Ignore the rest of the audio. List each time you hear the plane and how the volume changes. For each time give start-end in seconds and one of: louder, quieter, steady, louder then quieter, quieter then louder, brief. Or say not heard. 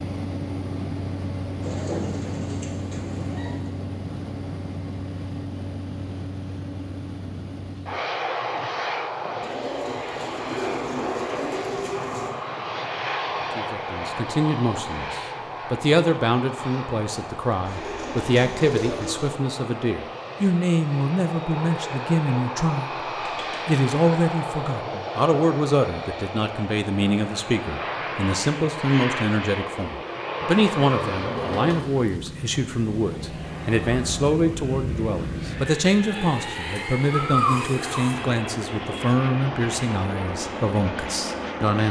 0.0-41.8 steady.